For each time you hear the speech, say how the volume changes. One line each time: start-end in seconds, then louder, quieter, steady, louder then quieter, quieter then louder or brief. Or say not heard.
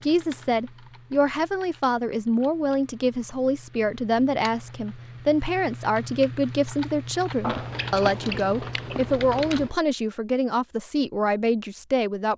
0.1-12.3 steady.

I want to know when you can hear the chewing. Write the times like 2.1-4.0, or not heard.
7.4-9.8.